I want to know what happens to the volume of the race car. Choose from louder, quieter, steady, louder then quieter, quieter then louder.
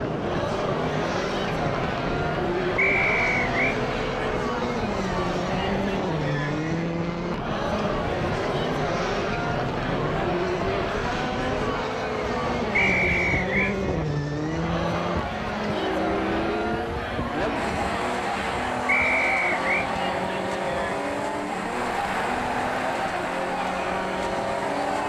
steady.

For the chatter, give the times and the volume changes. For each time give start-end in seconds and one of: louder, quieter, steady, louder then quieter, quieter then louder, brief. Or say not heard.
0.0-25.0 steady.